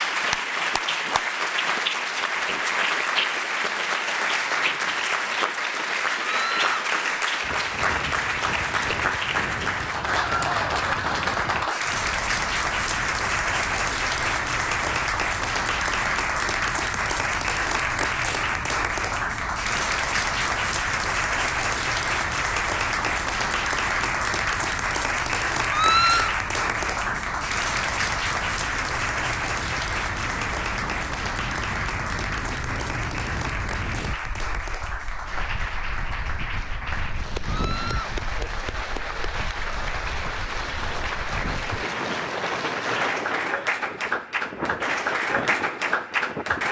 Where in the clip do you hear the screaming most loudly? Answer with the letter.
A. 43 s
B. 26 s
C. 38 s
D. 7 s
B.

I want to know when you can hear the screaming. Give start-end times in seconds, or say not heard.
6.2-6.7, 25.7-26.3, 37.5-38.1.